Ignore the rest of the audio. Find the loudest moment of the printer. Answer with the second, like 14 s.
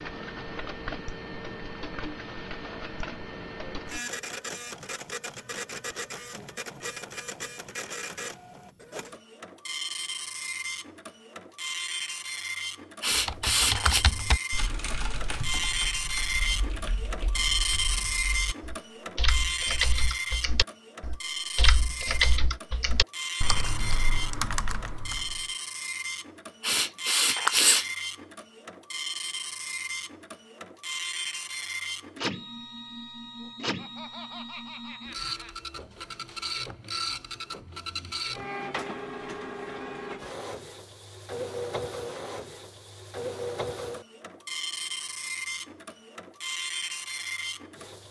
18 s.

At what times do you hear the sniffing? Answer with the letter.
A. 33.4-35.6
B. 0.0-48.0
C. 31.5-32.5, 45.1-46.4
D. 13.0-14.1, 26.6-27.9
D.